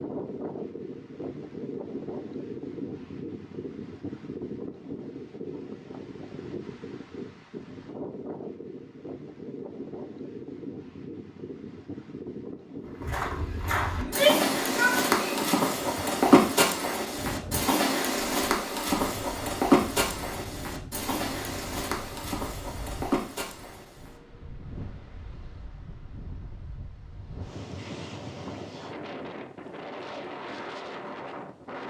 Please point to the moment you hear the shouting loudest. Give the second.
14 s.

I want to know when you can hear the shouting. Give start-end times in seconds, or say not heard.
13.9-15.5.